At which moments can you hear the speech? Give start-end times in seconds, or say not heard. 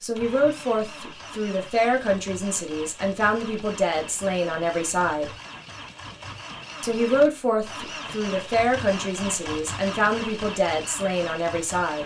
0.0-5.3, 6.8-12.0.